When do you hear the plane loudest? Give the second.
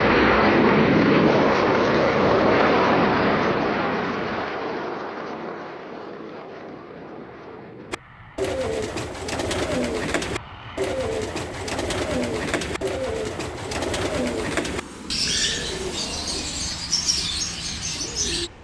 1 s.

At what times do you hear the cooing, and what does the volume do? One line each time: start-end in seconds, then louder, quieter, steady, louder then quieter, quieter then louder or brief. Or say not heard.
7.9-18.5 steady.